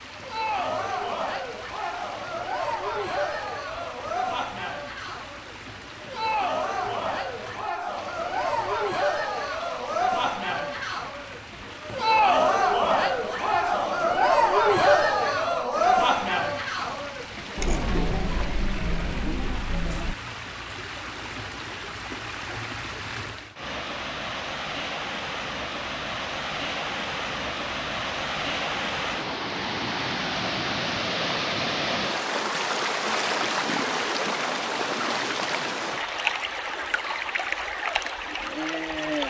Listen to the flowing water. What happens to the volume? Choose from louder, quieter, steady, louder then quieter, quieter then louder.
louder.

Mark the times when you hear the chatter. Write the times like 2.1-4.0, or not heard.
0.1-20.1.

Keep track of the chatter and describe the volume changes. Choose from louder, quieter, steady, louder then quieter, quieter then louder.
louder then quieter.